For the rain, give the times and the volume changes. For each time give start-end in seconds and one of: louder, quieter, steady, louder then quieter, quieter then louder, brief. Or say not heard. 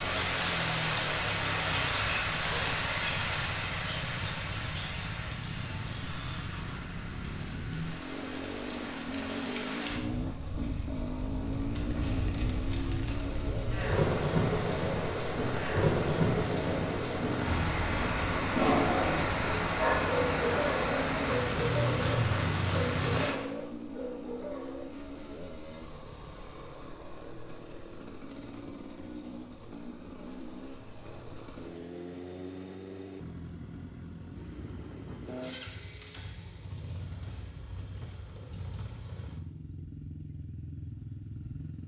0.0-23.4 quieter then louder.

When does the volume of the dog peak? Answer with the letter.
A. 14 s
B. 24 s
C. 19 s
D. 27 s
C.